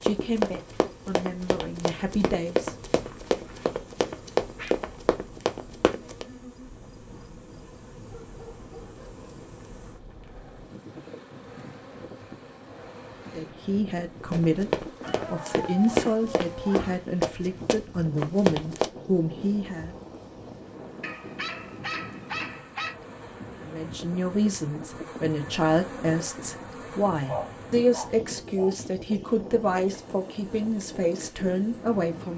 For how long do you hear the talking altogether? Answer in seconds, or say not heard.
18 s.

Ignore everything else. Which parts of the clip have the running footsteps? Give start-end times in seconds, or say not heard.
0.0-6.2, 14.3-18.9.